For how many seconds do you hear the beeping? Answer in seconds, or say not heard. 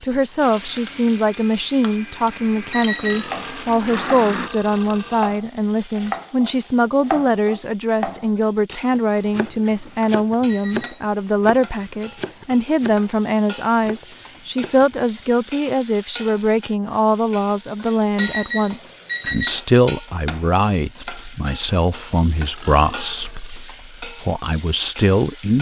3 s.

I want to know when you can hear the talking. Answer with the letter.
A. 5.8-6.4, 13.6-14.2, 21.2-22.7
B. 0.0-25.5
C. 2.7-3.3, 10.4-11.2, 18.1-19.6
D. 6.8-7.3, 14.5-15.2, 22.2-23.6
B.